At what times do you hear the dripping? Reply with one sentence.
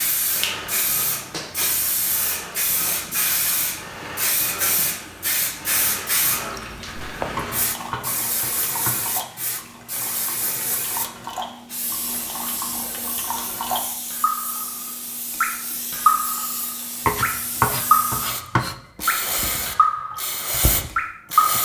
The dripping can be heard from 6.3 to 21.6 s.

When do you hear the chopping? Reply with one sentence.
You can hear the chopping from 7.3 to 9.1 s and from 17.1 to 18.8 s.